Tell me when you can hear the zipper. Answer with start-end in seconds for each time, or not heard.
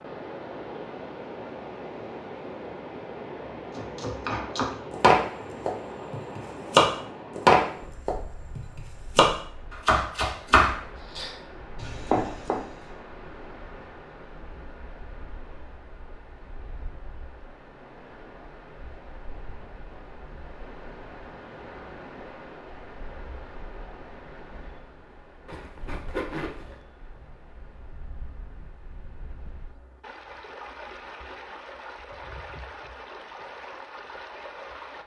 25.4-26.8.